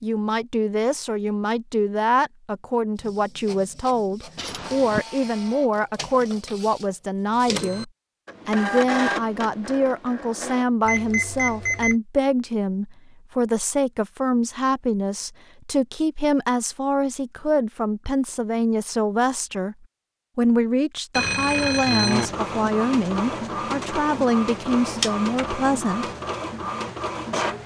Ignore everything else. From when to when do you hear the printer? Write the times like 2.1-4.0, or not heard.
3.0-10.7, 22.1-27.6.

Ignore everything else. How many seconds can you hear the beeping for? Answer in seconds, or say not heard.
3 s.